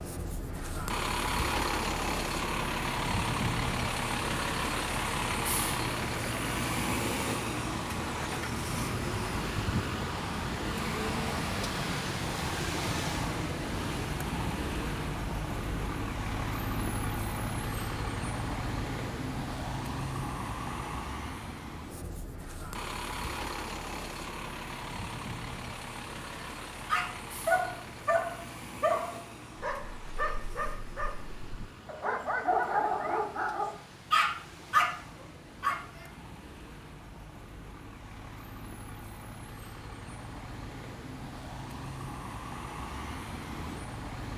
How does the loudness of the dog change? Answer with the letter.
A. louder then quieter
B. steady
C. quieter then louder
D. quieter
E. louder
C.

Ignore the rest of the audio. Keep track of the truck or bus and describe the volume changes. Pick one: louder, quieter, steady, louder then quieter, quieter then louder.
quieter.